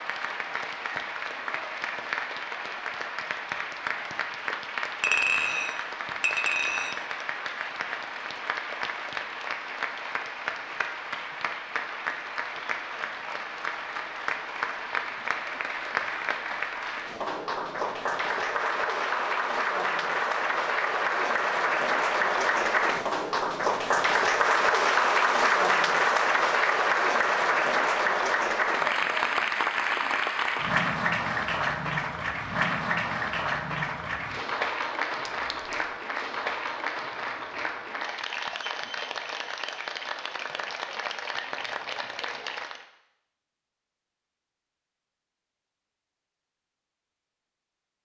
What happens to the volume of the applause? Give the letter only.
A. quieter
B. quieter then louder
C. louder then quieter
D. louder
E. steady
C.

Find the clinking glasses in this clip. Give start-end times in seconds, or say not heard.
5.0-7.0, 35.3-35.9.